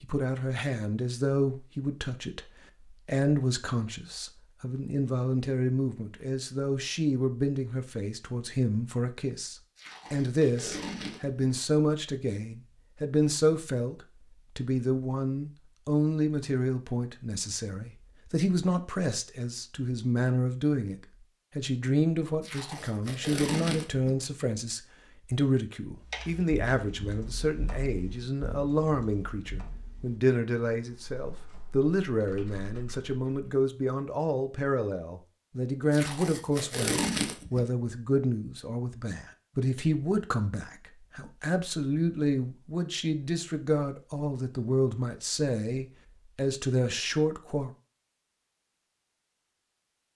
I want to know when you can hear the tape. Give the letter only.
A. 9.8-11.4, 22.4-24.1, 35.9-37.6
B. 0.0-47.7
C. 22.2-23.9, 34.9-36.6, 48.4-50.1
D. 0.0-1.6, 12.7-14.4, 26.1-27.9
A.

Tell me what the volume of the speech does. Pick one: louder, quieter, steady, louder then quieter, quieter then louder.
steady.